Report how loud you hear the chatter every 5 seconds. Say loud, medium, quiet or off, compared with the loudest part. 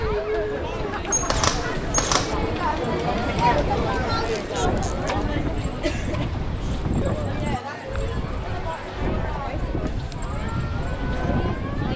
loud, medium, medium.